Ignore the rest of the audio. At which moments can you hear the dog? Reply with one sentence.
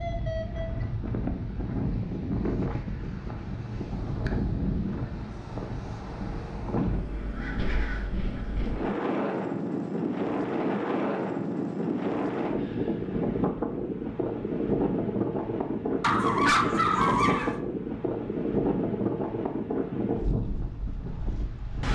The dog can be heard from 16.0 to 17.6 s.